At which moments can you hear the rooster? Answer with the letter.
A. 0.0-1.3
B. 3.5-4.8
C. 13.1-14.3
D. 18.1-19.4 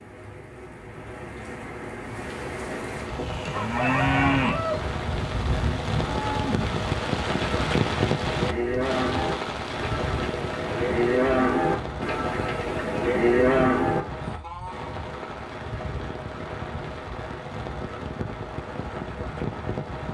B.